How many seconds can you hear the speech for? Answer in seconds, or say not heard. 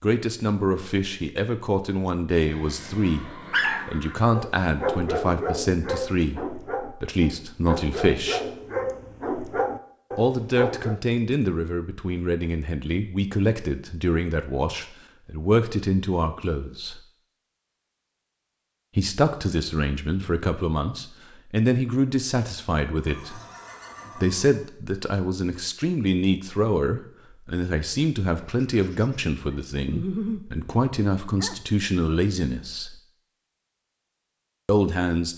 29 s.